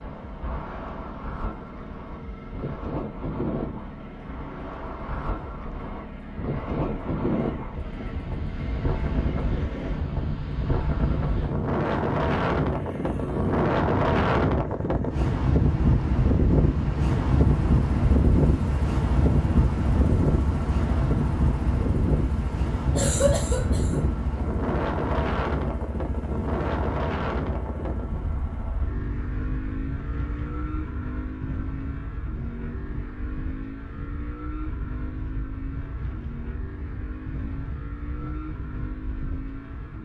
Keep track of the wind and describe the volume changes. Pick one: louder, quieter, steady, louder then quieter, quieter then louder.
louder then quieter.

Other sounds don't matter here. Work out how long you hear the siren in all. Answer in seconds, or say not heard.
not heard.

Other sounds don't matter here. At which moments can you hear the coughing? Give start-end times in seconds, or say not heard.
22.9-24.1.